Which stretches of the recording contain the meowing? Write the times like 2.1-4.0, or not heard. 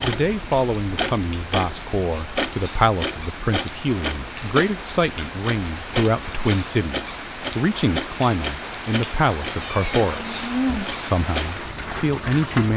9.5-11.0.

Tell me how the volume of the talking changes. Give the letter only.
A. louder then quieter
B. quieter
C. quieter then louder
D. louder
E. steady
E.